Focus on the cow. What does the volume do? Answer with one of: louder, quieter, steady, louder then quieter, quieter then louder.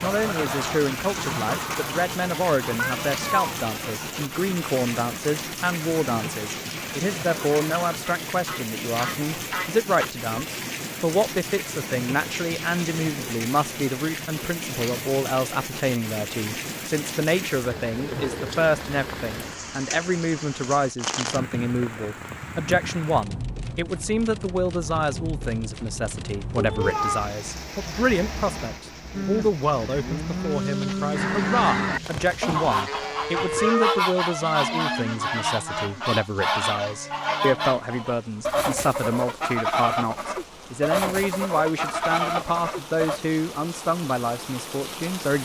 quieter.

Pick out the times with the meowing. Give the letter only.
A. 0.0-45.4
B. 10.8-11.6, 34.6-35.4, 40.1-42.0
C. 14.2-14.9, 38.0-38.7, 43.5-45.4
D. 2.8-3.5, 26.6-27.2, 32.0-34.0
D.